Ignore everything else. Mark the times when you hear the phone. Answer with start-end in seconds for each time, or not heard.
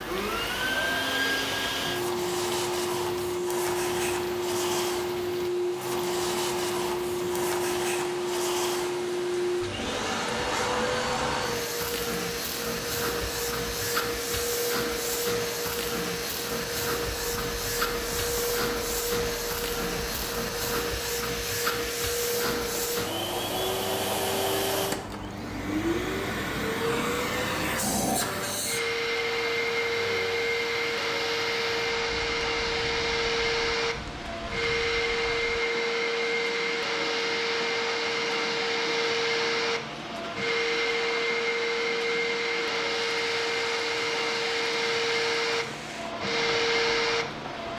not heard.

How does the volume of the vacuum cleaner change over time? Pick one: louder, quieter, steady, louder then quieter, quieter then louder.
steady.